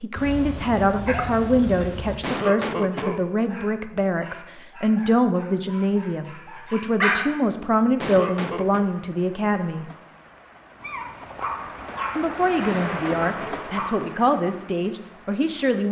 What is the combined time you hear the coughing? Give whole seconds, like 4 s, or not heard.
3 s.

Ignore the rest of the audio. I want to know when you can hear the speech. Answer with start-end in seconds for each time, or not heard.
0.0-9.8, 12.2-15.8.